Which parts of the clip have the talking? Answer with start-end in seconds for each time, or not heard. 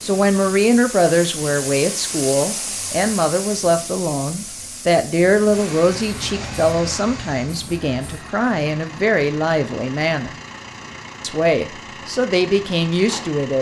0.0-10.3, 11.2-13.5.